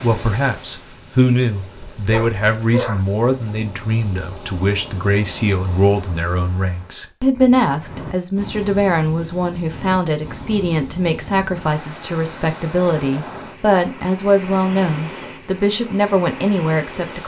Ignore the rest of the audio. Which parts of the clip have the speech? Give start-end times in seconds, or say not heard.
0.0-17.2.